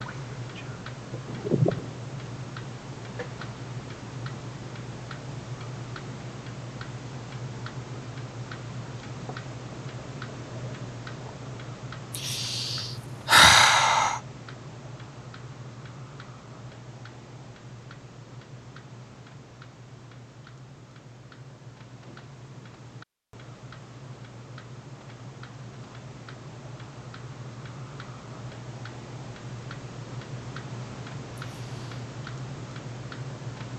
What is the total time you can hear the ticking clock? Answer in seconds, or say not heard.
34 s.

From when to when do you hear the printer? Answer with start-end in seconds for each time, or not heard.
not heard.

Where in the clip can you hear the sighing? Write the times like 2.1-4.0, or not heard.
1.2-1.9, 12.1-14.2, 31.4-31.9.